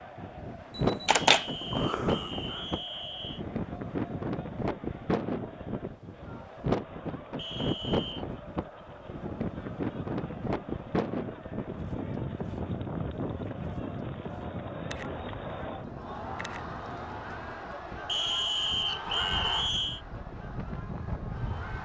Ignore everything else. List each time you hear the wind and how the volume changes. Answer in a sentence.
The wind can be heard from 0.0 to 21.8 s, getting quieter.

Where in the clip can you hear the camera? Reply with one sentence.
You can hear the camera from 0.8 to 2.6 s and from 14.8 to 17.6 s.